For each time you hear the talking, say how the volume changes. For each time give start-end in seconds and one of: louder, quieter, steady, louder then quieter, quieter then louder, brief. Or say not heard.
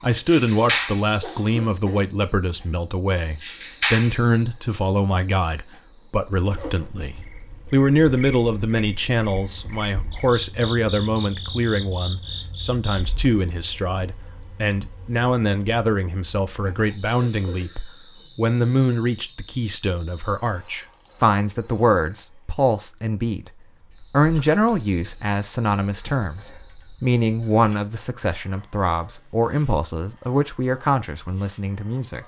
0.0-32.2 steady.